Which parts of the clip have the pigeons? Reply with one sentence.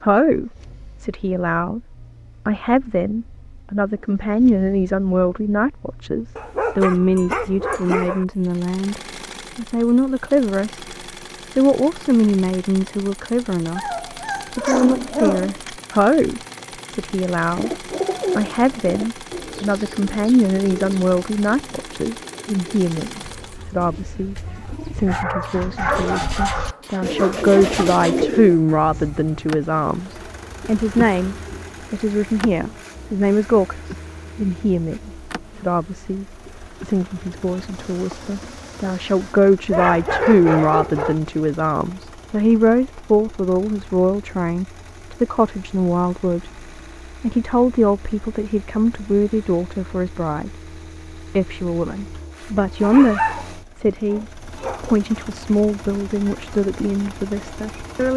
The pigeons can be heard from 17.6 to 28.6 s.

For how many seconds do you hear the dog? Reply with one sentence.
The dog can be heard for 10 seconds in total.